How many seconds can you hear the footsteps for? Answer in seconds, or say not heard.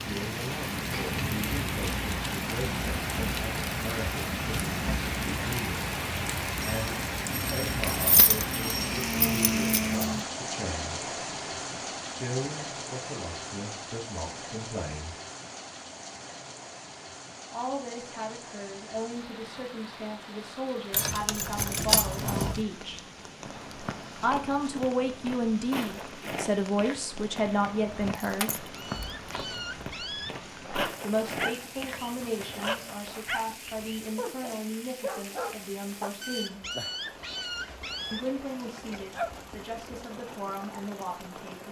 9 s.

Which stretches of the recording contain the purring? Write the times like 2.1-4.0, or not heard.
not heard.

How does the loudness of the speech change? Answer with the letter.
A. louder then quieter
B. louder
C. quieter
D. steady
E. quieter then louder
A.